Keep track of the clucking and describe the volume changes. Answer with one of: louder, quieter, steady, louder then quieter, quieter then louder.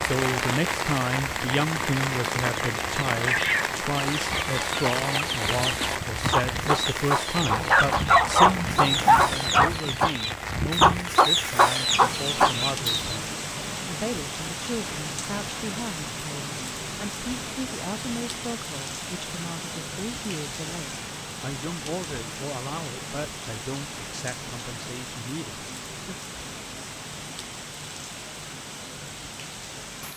louder.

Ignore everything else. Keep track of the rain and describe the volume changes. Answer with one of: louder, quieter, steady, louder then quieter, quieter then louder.
quieter.